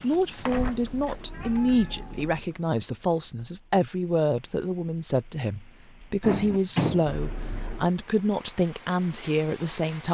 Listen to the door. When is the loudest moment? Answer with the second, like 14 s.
7 s.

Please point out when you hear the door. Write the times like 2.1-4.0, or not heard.
0.5-1.1, 6.2-7.0.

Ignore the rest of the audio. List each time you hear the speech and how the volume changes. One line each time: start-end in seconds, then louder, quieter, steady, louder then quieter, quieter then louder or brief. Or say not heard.
0.0-10.1 steady.